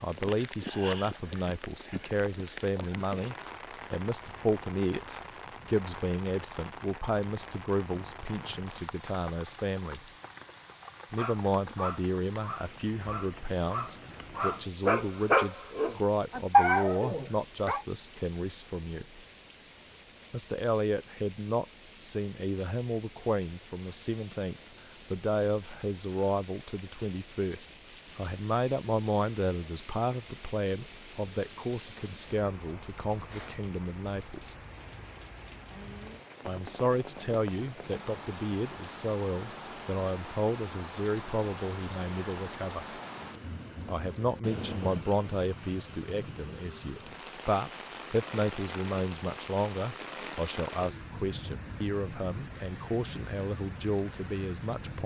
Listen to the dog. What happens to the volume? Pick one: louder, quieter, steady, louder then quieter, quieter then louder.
louder.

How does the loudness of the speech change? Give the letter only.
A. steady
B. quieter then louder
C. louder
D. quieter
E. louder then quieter
A.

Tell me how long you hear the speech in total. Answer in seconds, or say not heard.
50 s.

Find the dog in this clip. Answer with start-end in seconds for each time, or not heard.
11.2-17.8.